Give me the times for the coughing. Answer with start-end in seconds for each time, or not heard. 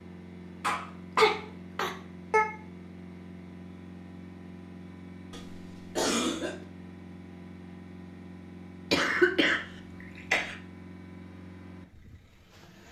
0.6-2.5, 5.3-6.5, 8.9-10.6.